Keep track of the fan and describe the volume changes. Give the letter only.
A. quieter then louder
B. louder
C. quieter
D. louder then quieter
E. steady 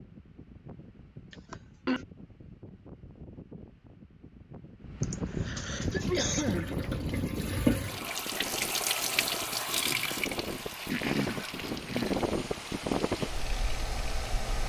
B.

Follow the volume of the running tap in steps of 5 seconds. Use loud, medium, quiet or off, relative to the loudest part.
off, loud, medium.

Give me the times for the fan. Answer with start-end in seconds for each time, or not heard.
0.0-14.6.